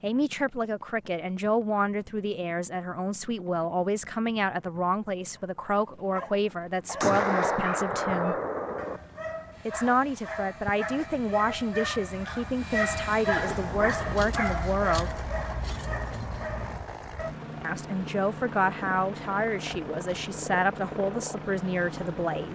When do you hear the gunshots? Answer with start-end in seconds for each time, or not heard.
7.0-9.0.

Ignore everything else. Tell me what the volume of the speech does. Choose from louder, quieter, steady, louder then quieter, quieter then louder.
steady.